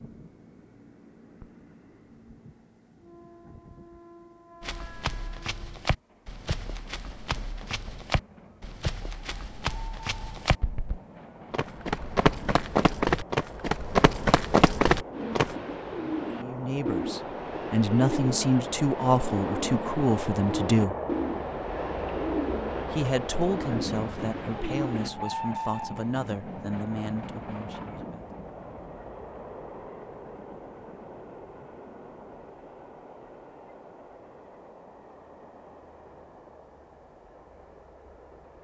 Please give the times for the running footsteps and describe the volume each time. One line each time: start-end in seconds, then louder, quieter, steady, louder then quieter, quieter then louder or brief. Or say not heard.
4.6-15.6 louder.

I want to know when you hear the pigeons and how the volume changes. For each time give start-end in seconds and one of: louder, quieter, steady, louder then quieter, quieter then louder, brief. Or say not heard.
15.1-25.1 steady.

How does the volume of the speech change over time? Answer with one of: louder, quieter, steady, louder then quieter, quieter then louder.
quieter.